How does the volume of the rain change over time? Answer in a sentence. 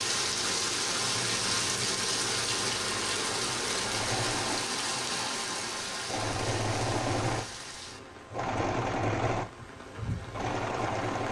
The volume of the rain goes down.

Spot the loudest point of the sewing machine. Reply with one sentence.
The volume of the sewing machine peaks at 9 seconds.